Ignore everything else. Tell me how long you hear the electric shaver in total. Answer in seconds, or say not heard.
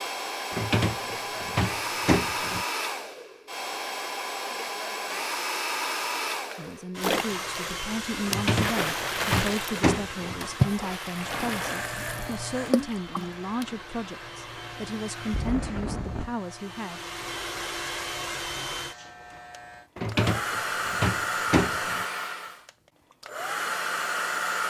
9 s.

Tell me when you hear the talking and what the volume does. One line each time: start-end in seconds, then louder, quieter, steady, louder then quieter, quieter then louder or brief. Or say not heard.
6.5-17.1 steady.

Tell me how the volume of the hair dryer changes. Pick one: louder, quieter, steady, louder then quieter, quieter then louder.
quieter then louder.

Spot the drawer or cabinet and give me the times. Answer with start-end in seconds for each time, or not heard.
0.5-2.6, 8.2-10.5, 19.9-22.1.